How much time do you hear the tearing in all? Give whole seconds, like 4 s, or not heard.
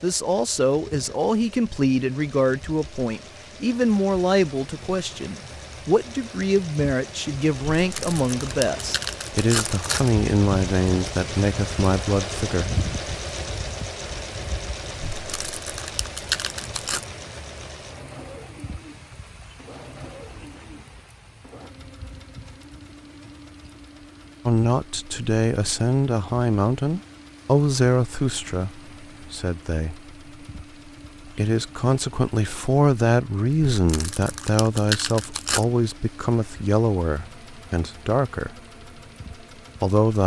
6 s.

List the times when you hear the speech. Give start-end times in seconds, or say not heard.
0.0-12.8, 24.4-30.1, 31.2-38.5, 39.8-40.2.